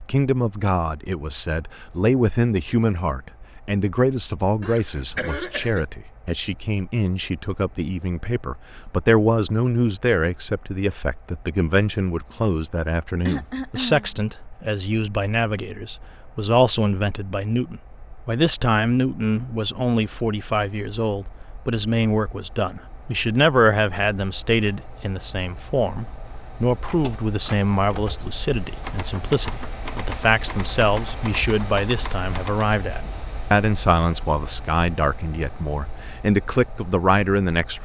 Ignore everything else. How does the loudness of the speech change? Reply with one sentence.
The volume of the speech stays about the same.